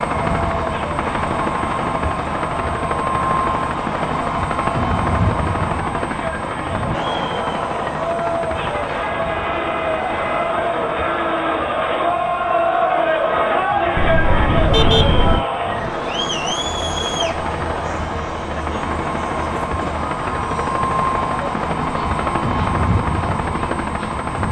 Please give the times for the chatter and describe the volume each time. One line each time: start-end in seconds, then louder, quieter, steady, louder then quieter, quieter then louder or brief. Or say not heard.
0.2-24.2 louder then quieter.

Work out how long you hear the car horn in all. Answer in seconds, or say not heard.
3 s.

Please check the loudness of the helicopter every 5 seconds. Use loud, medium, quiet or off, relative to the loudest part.
loud, loud, medium, medium, loud.